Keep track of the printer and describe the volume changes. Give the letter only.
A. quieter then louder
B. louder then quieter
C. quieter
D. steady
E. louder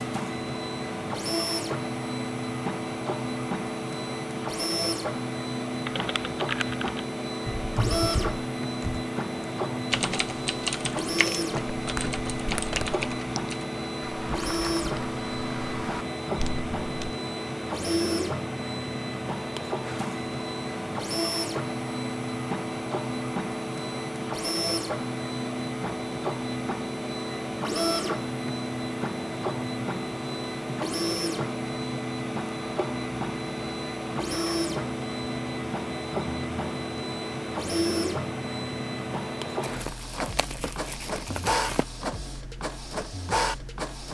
D.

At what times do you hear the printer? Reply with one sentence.
The printer can be heard from 0.0 to 44.0 s.